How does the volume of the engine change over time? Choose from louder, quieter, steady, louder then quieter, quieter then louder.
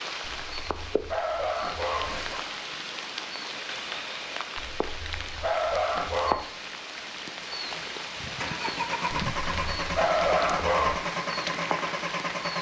steady.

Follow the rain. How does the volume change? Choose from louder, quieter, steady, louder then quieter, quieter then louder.
steady.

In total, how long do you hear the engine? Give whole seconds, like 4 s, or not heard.
5 s.